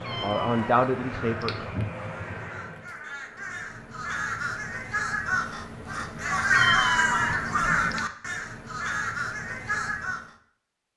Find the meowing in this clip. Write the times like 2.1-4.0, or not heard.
0.0-1.6, 6.5-8.0.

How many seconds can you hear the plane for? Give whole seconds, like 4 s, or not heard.
3 s.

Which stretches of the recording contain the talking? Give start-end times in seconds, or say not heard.
0.0-1.6.